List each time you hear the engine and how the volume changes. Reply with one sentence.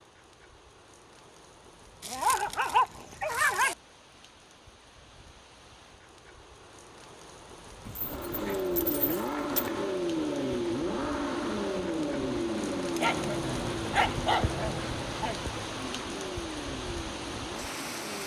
The engine can be heard from 8.0 to 18.2 s, getting quieter.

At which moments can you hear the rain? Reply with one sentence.
The rain can be heard from 0.0 to 18.2 s.